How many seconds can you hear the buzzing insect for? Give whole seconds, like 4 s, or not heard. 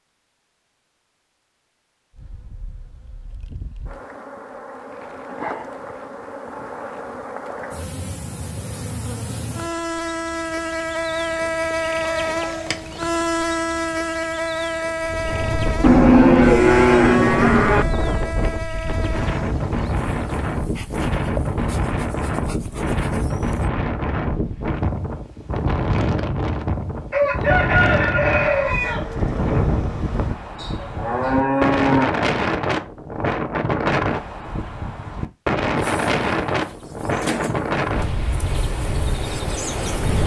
26 s.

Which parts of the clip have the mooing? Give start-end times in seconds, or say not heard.
15.8-17.9, 30.6-32.1.